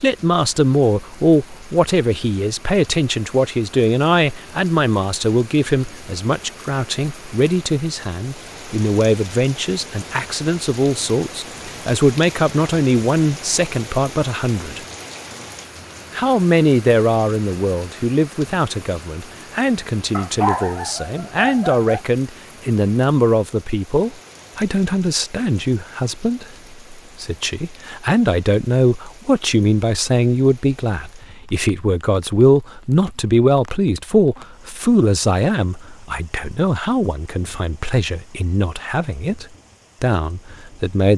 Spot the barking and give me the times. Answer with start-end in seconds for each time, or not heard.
20.1-22.0.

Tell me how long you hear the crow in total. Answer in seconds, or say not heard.
not heard.